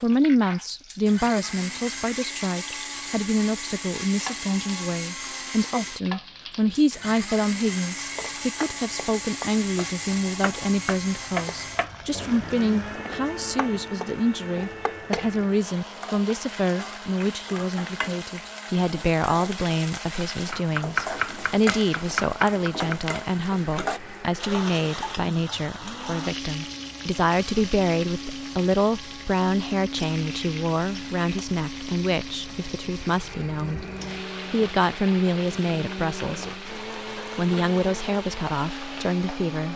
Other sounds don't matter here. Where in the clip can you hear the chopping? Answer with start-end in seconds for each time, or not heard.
9.7-11.9, 20.5-22.9.